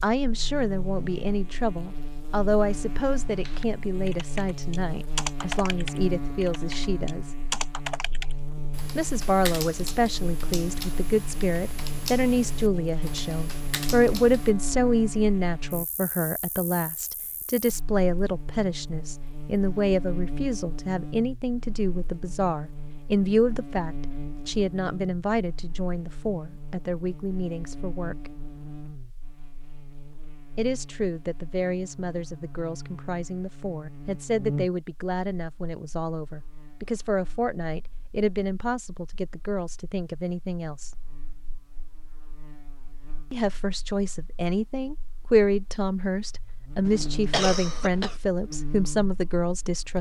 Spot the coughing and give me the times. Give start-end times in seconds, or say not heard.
46.9-48.1.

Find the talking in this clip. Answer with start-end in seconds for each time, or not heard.
0.0-7.3, 8.9-28.3, 30.6-40.9, 43.3-49.9.